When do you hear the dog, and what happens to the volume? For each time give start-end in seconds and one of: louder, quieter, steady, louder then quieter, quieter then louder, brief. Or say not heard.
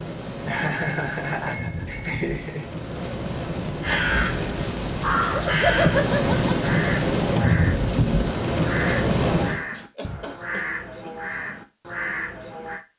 not heard.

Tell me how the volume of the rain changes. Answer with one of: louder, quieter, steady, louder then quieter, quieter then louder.
louder.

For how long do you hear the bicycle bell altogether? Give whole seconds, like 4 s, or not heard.
2 s.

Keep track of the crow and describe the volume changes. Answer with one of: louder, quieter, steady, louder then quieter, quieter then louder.
quieter.